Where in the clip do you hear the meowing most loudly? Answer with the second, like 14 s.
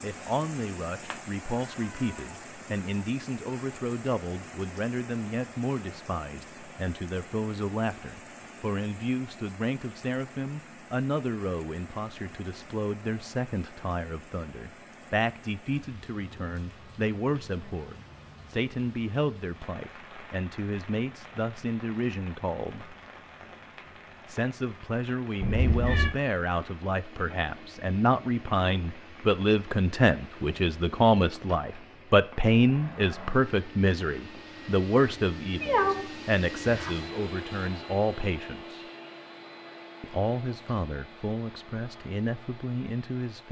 36 s.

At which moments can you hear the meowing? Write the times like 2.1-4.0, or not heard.
1.1-2.1, 25.4-26.1, 35.0-37.0.